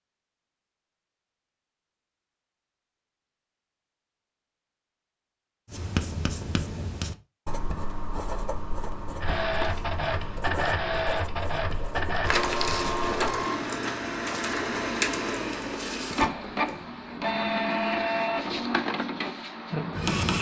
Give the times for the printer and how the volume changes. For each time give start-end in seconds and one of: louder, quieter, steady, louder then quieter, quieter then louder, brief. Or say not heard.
9.2-20.3 steady.